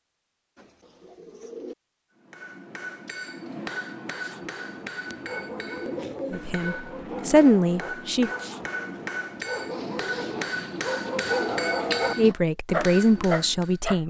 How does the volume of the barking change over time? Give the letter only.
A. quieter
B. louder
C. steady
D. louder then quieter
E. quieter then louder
B.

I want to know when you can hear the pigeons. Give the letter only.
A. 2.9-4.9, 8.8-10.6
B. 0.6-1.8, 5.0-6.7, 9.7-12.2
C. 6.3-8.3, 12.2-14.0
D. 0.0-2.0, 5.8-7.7
B.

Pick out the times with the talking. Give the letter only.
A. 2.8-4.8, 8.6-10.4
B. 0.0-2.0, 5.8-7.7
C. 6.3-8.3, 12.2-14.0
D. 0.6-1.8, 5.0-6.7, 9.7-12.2
C.